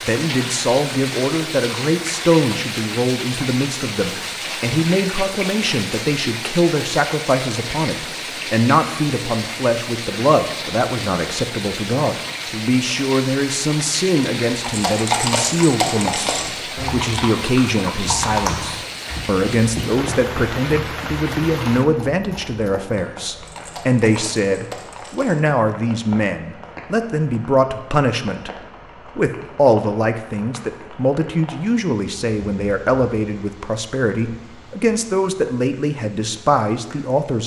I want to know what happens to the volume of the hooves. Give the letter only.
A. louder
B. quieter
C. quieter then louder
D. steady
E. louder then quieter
B.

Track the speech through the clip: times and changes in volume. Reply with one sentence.
The speech can be heard from 0.0 to 37.4 s, at a steady volume.